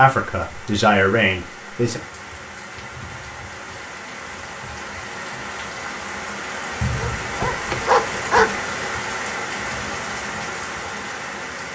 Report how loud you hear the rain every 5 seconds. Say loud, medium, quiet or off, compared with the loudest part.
medium, loud, loud.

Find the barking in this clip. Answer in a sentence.
The barking can be heard from 6.8 to 8.6 s.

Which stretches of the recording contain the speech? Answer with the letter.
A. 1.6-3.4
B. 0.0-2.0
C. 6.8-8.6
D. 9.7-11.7
B.